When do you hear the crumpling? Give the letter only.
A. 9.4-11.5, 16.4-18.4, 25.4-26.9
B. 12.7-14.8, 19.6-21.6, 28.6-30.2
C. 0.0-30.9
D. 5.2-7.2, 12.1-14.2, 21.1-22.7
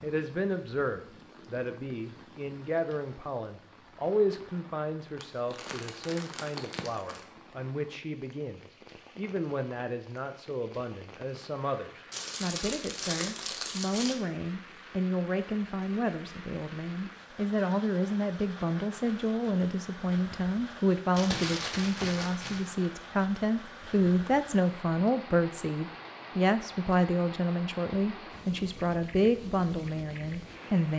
D.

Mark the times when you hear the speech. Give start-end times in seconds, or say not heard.
0.0-30.9.